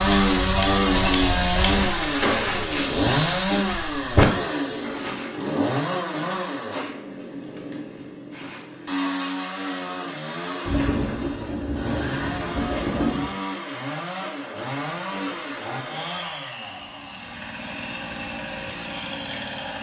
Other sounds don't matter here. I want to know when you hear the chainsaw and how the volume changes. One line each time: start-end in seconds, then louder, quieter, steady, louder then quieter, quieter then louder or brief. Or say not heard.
0.0-19.7 quieter.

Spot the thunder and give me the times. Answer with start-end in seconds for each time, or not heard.
10.7-13.3.